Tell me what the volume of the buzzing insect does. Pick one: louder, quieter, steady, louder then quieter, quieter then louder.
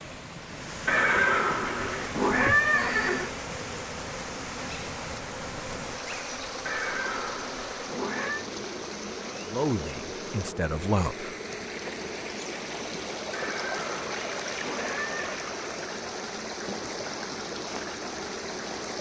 steady.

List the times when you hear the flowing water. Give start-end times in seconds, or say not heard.
0.0-18.9.